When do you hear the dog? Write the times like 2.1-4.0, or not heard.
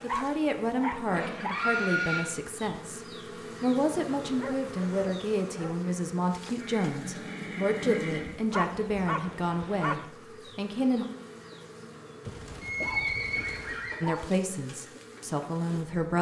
0.0-1.6, 4.3-5.8, 8.5-10.1, 12.2-14.2.